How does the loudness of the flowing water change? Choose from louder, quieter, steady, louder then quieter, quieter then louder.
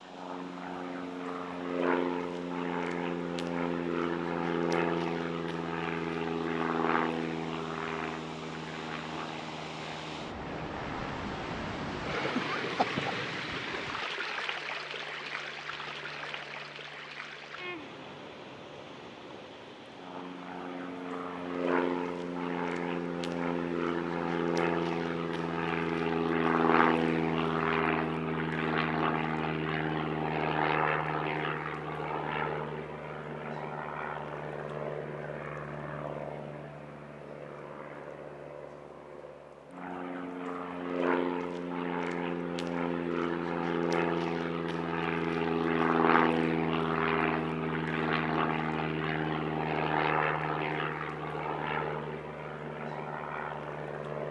louder then quieter.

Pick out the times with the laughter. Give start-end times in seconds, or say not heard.
12.2-13.1.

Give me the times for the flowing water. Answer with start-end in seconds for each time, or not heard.
0.0-27.9.